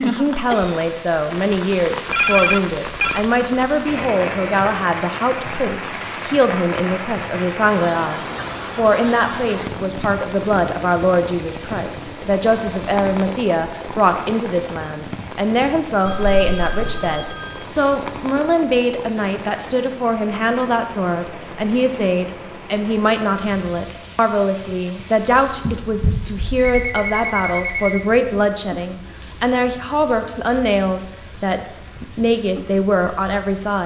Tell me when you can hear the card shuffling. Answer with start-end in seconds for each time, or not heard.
not heard.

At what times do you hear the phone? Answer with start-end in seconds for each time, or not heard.
2.1-3.2, 16.1-17.6, 25.6-28.1.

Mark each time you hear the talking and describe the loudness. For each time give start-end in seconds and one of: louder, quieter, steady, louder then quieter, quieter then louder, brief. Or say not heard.
0.0-33.8 steady.